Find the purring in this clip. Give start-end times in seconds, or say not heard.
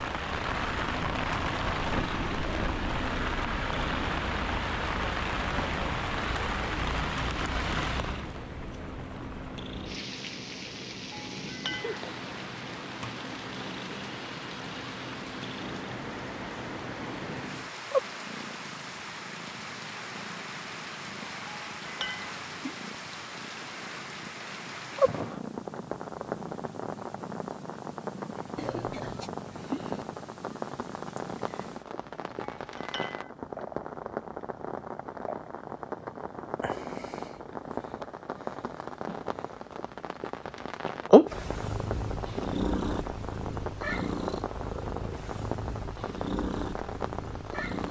0.0-47.8.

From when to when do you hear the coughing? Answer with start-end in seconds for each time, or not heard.
28.6-29.3.